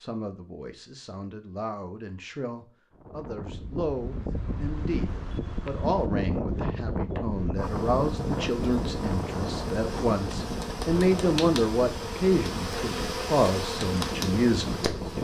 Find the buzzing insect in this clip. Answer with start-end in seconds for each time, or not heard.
7.5-15.1.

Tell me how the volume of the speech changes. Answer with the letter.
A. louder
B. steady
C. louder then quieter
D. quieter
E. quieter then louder
A.